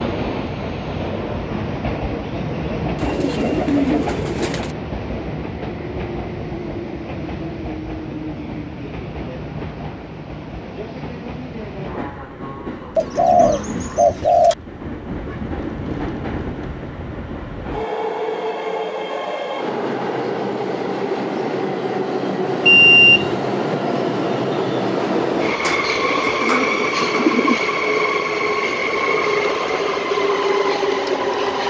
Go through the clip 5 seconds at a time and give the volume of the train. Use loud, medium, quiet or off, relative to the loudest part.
medium, medium, medium, medium, loud, loud, loud.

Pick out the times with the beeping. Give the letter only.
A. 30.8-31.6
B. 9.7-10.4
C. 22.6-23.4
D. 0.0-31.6
C.